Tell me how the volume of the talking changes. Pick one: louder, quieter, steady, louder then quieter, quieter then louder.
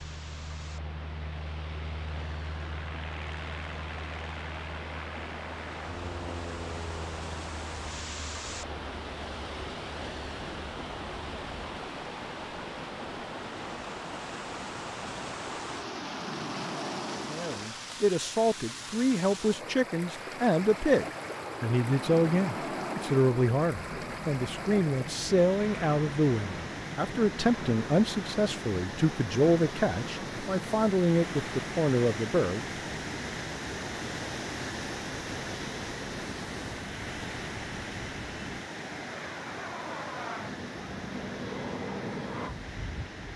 steady.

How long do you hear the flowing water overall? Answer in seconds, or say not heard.
43 s.